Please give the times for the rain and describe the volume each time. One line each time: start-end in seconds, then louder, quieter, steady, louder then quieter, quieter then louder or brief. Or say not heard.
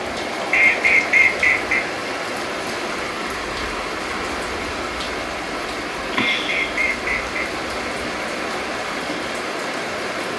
0.0-10.3 steady.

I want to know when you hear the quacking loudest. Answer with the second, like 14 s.
1 s.